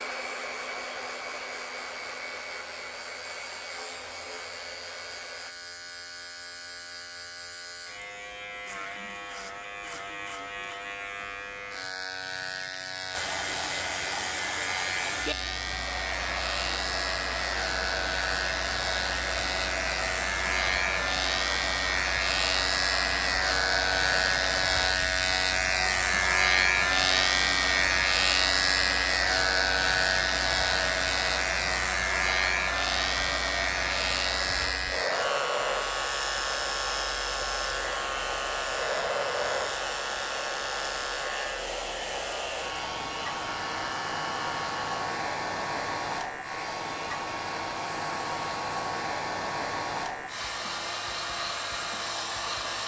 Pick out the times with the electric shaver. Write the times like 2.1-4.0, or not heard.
0.0-52.8.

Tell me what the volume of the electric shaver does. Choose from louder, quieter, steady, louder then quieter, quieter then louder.
louder then quieter.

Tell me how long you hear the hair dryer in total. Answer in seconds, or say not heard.
45 s.